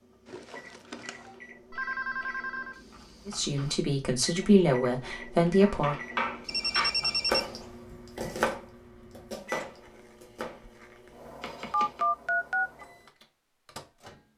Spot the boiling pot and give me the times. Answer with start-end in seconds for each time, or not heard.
not heard.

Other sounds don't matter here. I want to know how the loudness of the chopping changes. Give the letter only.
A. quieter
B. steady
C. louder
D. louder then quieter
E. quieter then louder
A.